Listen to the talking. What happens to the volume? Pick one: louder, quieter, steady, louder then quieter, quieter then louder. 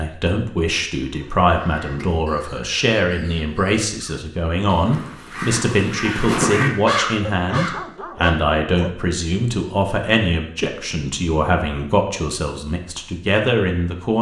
steady.